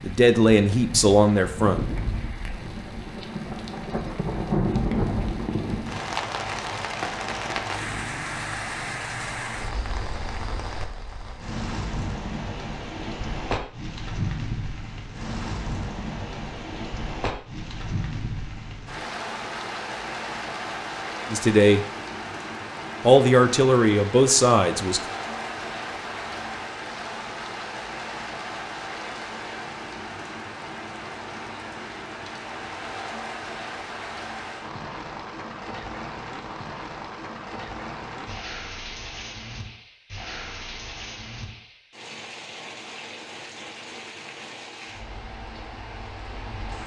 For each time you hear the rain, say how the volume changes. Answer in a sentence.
You can hear the rain from 0.0 to 46.8 s, getting quieter.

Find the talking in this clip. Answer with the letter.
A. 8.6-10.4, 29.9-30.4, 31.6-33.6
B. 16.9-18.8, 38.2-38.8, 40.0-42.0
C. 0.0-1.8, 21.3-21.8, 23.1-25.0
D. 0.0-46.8
C.